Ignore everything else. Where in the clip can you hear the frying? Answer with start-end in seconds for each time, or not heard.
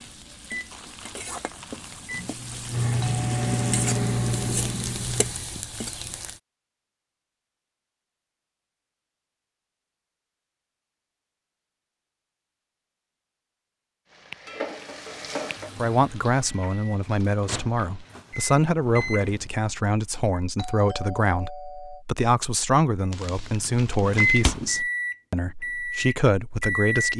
0.0-6.4, 14.1-18.2.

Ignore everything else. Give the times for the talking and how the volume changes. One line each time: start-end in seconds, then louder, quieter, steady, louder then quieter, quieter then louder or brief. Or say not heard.
15.8-27.1 steady.